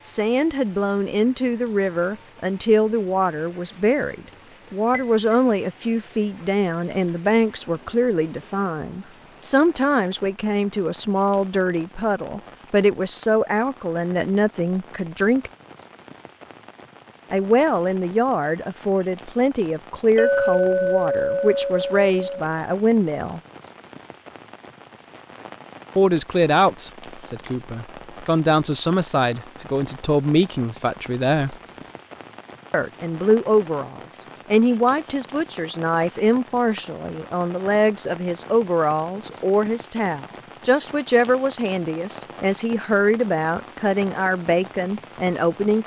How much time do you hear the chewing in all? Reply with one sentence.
You can't hear the chewing here.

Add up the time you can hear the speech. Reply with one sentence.
The speech can be heard for 40 seconds in total.